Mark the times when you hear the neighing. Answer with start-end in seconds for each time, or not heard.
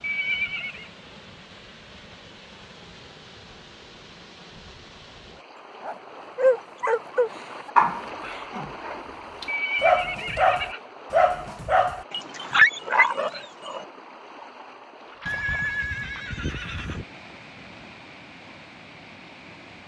0.0-0.9, 9.4-10.8, 15.2-17.1.